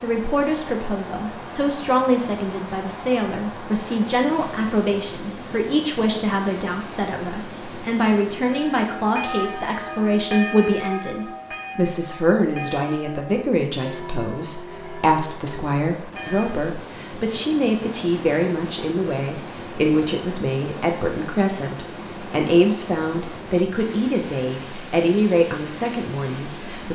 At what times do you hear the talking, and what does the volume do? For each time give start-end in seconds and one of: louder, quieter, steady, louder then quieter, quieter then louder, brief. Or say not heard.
0.0-26.9 steady.